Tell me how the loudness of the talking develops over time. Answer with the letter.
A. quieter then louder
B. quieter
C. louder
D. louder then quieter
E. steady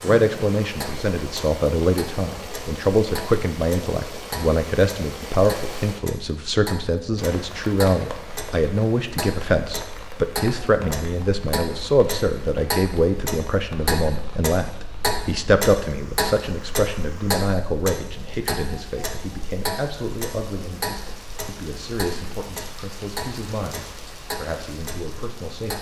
B.